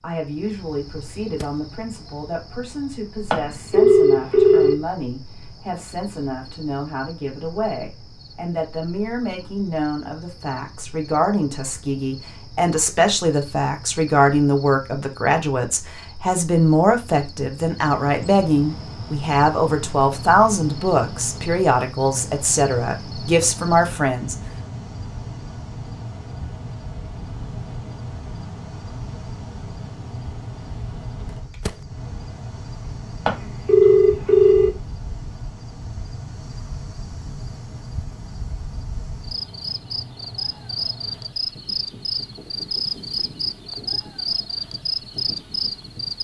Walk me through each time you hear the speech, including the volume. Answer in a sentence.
You can hear the speech from 0.0 to 24.4 s, getting louder.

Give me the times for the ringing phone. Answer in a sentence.
You can hear the ringing phone from 3.3 to 4.8 s and from 33.2 to 34.7 s.